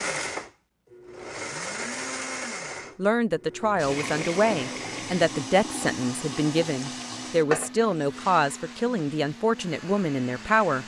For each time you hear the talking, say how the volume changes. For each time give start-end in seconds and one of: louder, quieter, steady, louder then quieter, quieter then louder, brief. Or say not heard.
2.6-10.8 steady.